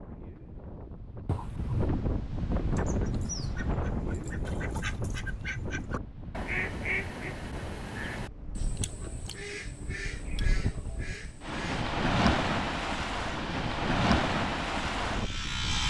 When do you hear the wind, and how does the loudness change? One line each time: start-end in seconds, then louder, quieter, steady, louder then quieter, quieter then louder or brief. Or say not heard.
0.0-15.8 quieter then louder.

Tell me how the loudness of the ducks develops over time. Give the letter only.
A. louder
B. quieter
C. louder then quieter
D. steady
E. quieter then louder
C.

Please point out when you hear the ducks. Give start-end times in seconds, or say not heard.
2.6-11.8.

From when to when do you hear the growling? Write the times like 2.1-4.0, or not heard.
1.2-1.9.